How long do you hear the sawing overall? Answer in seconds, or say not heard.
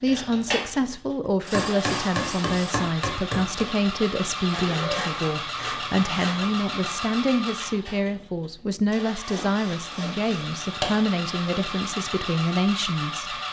5 s.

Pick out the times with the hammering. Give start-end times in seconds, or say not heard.
1.5-3.7.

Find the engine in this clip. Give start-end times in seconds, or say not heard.
0.0-13.4.